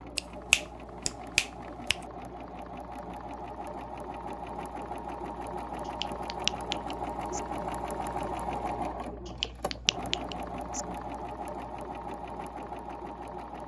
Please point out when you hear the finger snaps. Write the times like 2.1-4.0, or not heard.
0.1-2.0, 5.8-7.4, 9.2-10.8.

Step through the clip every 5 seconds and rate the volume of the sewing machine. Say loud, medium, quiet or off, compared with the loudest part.
medium, loud, loud.